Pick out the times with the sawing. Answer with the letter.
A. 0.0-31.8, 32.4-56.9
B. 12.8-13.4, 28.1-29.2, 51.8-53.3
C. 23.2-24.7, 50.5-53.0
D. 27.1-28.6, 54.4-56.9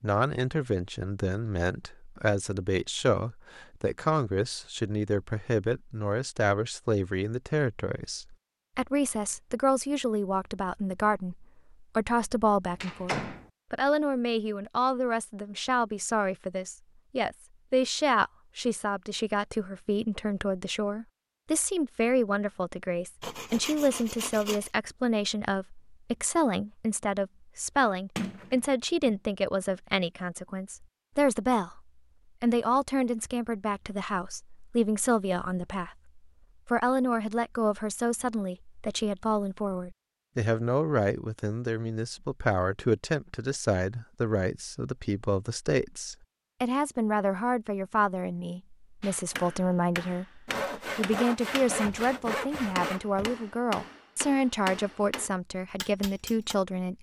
C.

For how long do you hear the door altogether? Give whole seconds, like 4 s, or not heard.
3 s.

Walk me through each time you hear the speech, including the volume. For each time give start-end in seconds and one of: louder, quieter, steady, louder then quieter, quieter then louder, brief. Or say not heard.
0.0-31.8 steady
32.4-56.9 steady.